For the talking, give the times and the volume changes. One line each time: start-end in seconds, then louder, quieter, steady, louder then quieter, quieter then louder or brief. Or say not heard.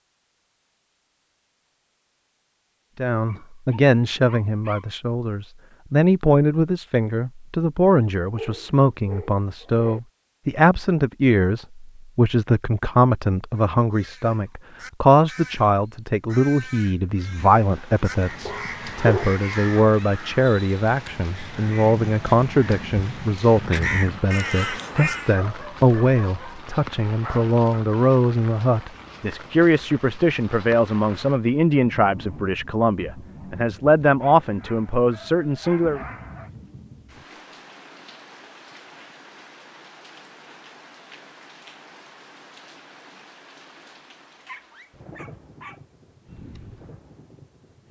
3.0-36.0 steady.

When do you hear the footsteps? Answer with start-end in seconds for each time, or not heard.
not heard.